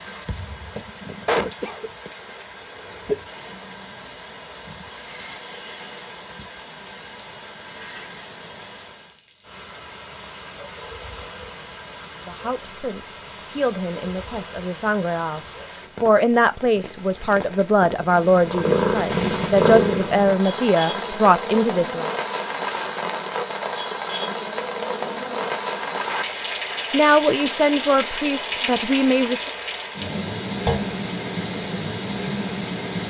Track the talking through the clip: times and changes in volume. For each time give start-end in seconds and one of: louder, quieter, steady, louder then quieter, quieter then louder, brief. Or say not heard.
12.2-22.1 louder
26.9-29.4 brief.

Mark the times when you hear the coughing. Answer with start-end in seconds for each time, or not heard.
1.2-3.2.